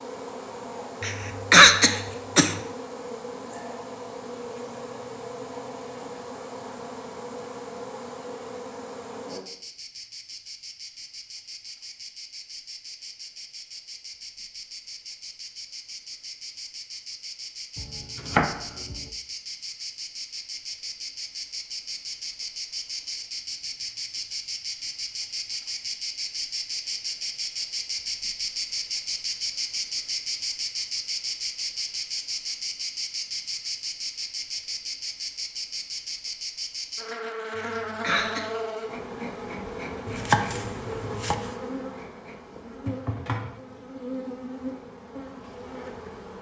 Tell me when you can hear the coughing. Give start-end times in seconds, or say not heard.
1.0-2.6, 37.6-38.5.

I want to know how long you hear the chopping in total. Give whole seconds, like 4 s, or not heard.
3 s.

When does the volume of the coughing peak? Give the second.
2 s.